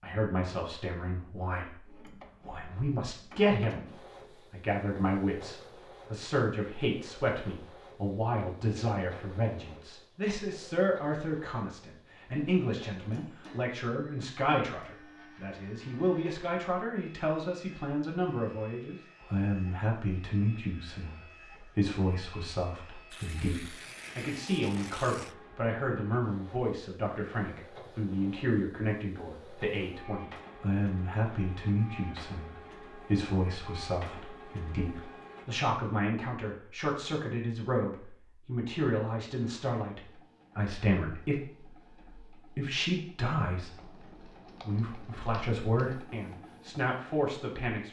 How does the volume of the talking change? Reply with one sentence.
The loudness of the talking stays about the same.